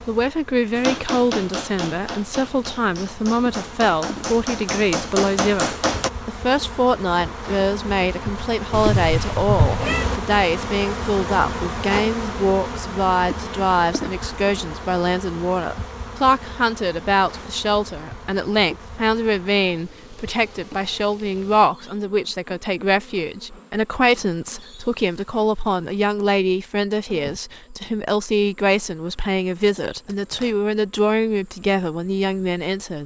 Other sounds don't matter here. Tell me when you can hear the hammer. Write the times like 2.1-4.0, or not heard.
0.8-6.1.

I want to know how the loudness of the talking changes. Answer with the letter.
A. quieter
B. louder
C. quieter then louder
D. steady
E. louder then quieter
D.